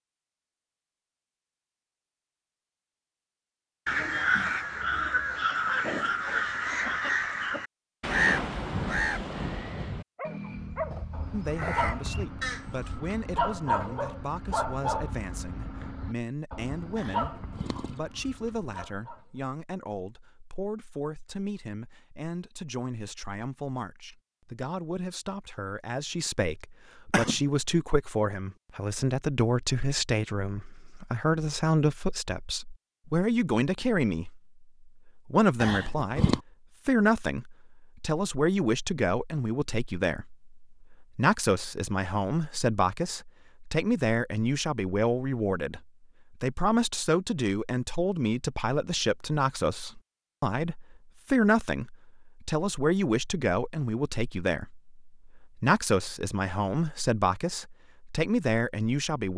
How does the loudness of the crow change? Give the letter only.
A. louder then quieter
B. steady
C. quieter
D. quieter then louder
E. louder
C.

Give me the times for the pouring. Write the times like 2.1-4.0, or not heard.
16.9-18.0, 35.6-36.4.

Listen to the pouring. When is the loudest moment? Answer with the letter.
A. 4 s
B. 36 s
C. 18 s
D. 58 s
B.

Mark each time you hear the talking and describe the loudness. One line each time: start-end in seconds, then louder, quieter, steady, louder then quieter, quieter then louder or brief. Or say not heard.
11.3-59.3 louder.